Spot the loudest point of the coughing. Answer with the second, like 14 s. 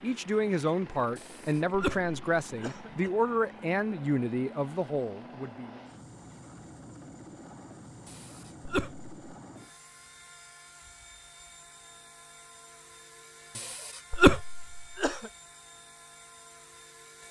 14 s.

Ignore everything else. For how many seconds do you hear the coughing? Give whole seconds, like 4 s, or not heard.
5 s.